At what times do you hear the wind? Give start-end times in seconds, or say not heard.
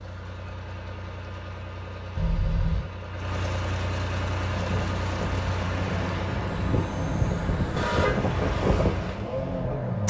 4.3-10.0.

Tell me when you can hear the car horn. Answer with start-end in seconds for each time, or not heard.
2.1-2.9, 6.5-8.2.